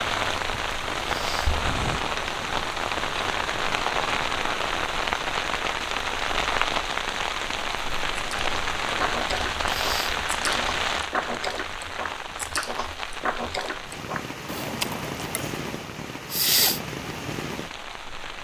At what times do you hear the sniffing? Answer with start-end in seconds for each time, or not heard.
1.1-1.6, 9.7-10.2, 16.3-16.8.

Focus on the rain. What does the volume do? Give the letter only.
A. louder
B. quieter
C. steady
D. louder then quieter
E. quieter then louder
B.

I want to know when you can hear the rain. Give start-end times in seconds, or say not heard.
0.0-18.3.